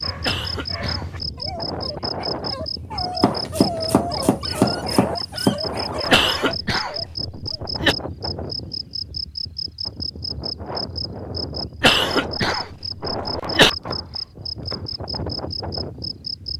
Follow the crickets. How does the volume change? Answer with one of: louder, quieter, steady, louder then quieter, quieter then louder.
steady.